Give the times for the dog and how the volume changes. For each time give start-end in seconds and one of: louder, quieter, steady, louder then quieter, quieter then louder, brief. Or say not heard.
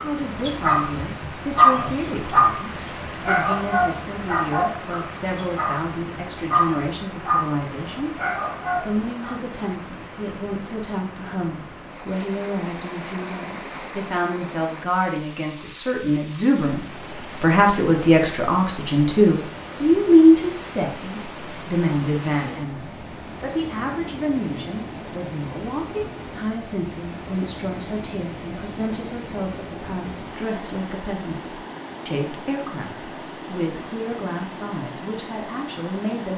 0.0-9.3 quieter.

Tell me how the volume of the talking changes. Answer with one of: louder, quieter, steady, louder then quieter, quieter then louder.
louder then quieter.